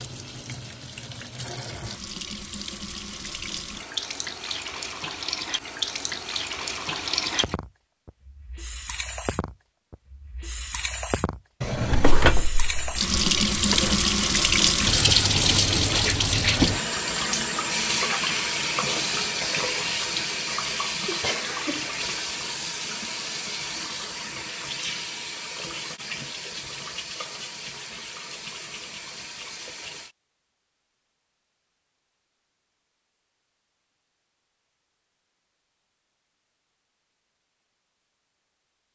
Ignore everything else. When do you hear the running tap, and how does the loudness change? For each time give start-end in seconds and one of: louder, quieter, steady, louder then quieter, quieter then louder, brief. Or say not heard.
0.0-30.1 louder then quieter.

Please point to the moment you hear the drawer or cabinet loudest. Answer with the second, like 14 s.
12 s.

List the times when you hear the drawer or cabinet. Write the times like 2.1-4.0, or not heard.
11.6-13.9.